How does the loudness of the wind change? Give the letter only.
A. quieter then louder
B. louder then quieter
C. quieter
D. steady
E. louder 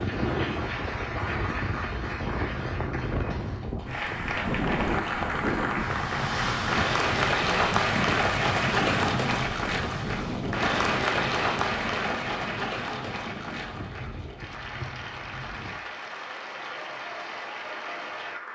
C.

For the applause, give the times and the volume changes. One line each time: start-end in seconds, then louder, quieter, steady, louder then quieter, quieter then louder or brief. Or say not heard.
0.0-18.4 louder then quieter.